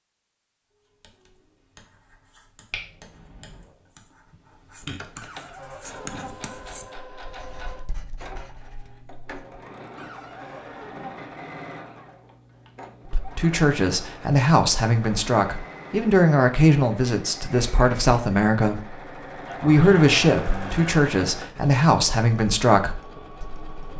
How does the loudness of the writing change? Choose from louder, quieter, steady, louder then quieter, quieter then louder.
louder then quieter.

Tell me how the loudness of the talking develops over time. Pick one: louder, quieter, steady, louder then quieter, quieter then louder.
steady.